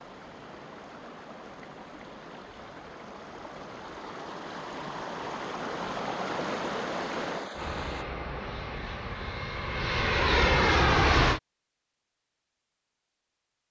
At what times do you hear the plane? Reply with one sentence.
You can hear the plane from 7.5 to 11.4 s.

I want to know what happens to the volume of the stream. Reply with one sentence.
The volume of the stream goes up.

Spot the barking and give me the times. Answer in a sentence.
The barking can't be heard in this clip.